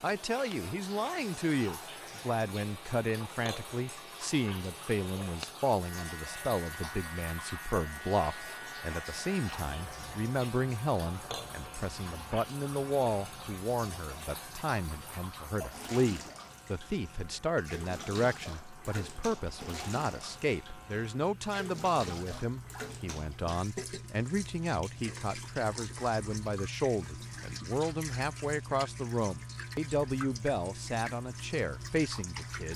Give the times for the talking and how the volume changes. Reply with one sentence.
The talking can be heard from 0.0 to 32.7 s, at a steady volume.